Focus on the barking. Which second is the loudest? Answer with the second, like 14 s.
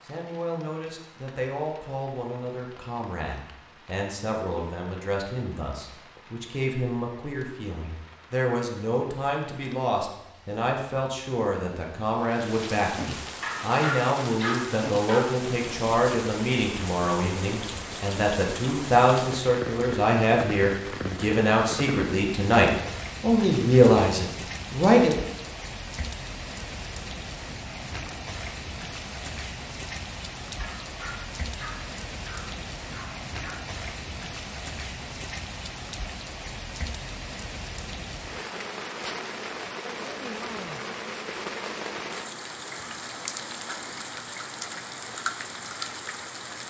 14 s.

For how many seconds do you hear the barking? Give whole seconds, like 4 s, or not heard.
5 s.